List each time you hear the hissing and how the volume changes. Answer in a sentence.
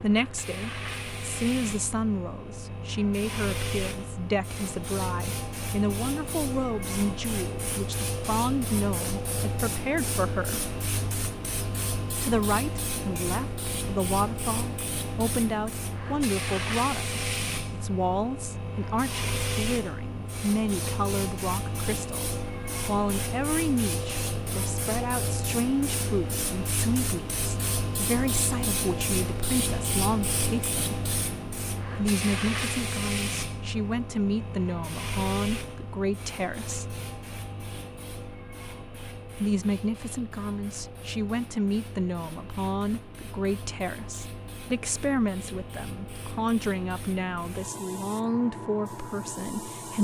You can hear the hissing from 0.0 to 50.0 s, getting quieter.